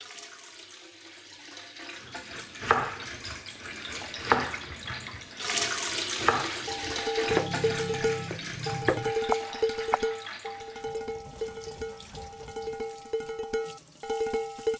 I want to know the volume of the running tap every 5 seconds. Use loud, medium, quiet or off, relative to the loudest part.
medium, loud, quiet.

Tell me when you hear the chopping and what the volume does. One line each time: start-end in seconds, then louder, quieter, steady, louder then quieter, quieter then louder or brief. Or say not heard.
2.0-10.1 steady.